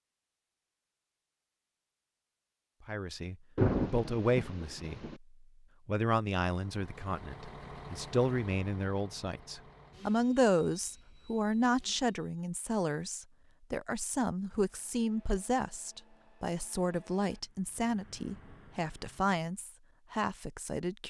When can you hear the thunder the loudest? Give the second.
4 s.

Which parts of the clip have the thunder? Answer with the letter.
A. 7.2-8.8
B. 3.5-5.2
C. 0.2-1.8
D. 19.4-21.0
B.